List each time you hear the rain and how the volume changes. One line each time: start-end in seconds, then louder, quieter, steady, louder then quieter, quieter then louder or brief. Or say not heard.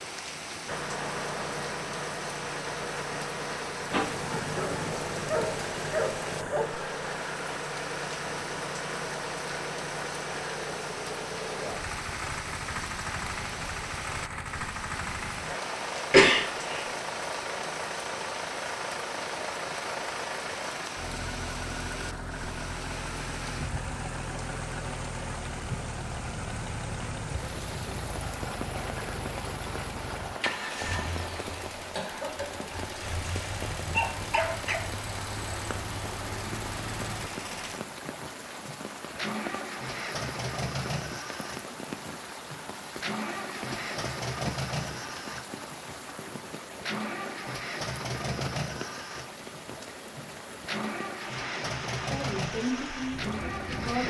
0.0-54.0 steady.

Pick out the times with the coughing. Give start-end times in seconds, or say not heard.
16.1-16.9, 31.9-32.7.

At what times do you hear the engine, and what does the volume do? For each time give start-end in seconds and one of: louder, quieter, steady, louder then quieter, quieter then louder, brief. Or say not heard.
0.0-54.0 steady.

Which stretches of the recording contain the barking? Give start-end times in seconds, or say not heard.
3.9-6.7, 32.8-34.9.